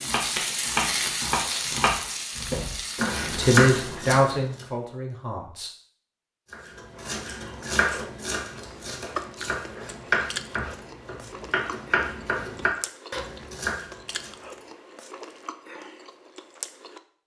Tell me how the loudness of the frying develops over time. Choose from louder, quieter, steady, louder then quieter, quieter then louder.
quieter.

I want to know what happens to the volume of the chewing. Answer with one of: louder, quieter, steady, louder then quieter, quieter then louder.
quieter.